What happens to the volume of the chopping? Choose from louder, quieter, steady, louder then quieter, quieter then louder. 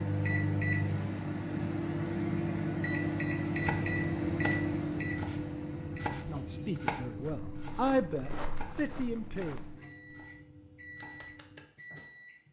quieter.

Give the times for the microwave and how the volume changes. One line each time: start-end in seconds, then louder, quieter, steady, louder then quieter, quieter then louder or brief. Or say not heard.
0.0-12.4 quieter.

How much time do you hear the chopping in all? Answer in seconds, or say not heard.
8 s.